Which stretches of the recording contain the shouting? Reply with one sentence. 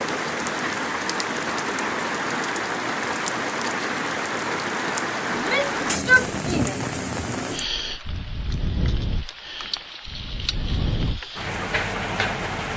The shouting can be heard from 5.3 to 6.8 s.